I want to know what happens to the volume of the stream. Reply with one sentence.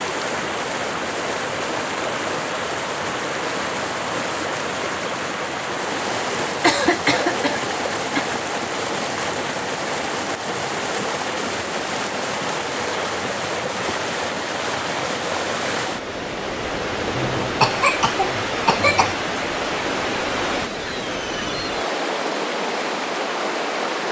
The volume of the stream stays about the same.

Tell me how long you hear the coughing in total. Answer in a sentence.
The coughing can be heard for 4 seconds in total.